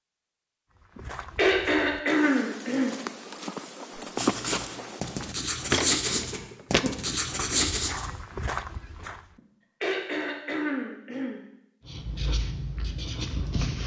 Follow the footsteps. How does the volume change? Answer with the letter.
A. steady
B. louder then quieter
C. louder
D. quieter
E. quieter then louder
B.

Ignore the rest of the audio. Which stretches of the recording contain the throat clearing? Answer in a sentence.
The throat clearing can be heard from 0.9 to 3.0 s, from 6.0 to 7.0 s and from 9.3 to 11.4 s.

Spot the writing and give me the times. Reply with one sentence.
The writing can be heard from 4.0 to 8.1 s and from 11.8 to 13.8 s.